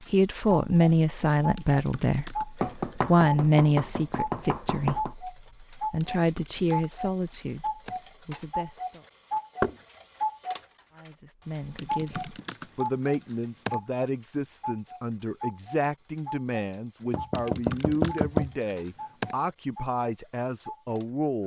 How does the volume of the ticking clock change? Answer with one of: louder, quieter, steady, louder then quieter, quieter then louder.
quieter.